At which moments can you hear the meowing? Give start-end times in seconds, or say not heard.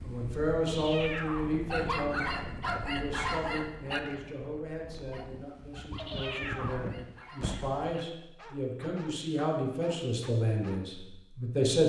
0.7-1.6, 6.0-7.0.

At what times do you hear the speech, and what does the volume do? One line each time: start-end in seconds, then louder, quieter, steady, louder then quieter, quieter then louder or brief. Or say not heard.
0.0-11.8 quieter then louder.